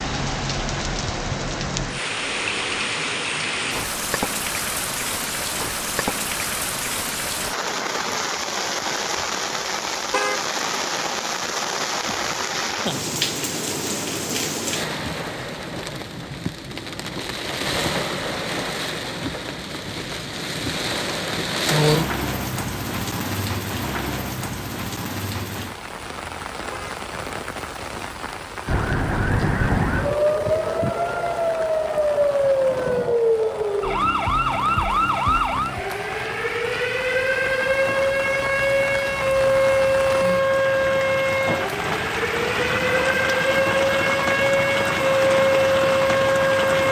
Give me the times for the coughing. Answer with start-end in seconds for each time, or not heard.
not heard.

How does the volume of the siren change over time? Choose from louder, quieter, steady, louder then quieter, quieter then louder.
steady.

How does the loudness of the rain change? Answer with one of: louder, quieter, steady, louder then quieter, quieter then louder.
quieter then louder.